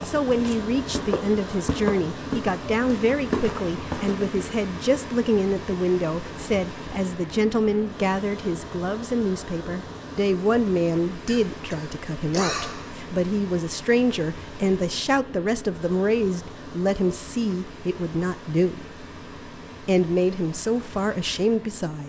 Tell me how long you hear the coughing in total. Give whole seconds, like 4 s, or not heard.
2 s.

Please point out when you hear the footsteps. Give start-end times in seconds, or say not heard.
0.0-4.5.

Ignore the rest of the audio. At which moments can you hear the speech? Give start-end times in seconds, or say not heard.
0.0-19.1, 19.8-22.0.